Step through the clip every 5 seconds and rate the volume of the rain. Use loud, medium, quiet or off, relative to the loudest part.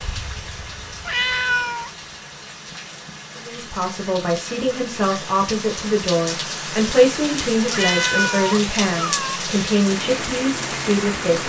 medium, loud, loud.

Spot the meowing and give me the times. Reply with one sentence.
You can hear the meowing from 1.1 to 1.9 s and from 7.7 to 9.4 s.